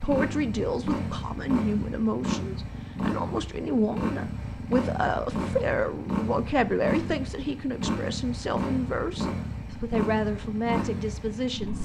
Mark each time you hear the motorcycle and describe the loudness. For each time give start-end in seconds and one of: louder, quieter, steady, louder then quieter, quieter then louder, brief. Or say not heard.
0.0-11.8 steady.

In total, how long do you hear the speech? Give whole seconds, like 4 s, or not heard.
12 s.